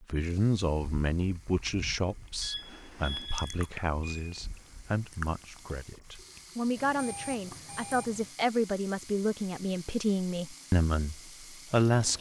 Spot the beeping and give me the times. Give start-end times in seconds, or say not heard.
2.4-4.4, 6.8-8.2.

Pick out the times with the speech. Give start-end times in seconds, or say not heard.
0.1-12.1.